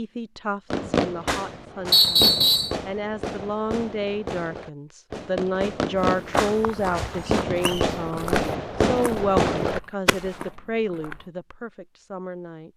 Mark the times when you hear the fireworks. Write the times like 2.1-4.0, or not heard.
0.7-10.4.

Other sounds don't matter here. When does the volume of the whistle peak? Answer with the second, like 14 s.
2 s.